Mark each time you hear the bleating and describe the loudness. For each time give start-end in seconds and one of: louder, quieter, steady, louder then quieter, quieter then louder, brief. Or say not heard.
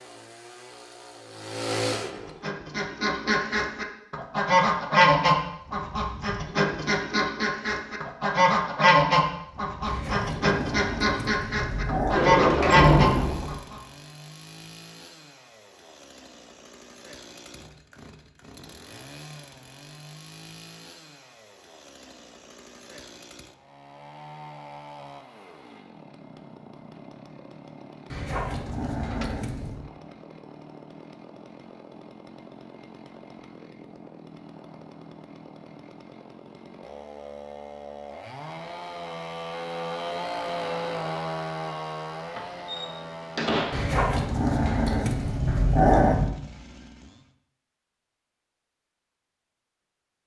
not heard.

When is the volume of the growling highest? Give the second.
46 s.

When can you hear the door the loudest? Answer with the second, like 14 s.
13 s.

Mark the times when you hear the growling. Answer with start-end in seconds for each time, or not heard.
9.8-12.2, 28.1-29.9, 43.7-46.4.